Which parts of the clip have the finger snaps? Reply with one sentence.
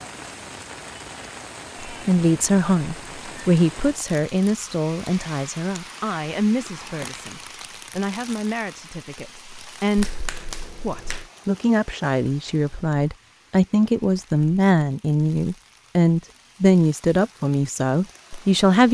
The finger snaps can be heard from 9.9 to 11.3 s.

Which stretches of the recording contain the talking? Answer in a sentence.
The talking can be heard from 1.9 to 18.8 s.